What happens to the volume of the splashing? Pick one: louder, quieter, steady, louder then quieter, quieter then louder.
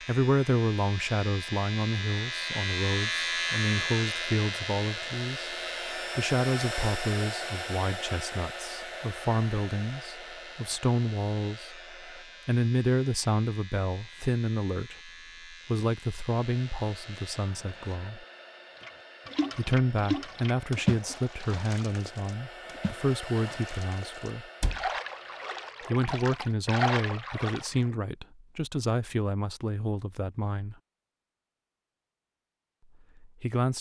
quieter then louder.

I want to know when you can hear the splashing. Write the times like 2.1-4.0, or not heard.
18.8-27.9.